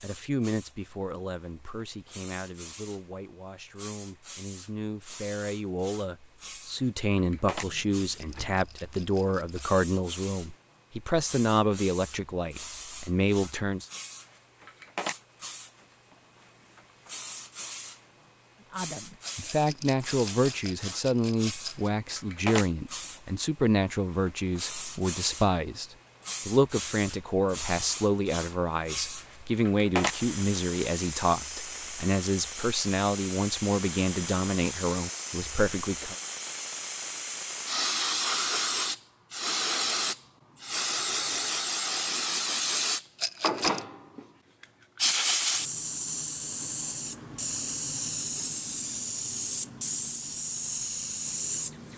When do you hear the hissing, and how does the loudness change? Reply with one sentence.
The hissing can be heard from 0.0 to 51.9 s, getting louder.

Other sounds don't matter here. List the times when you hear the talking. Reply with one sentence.
The talking can be heard from 0.0 to 13.9 s and from 18.7 to 36.1 s.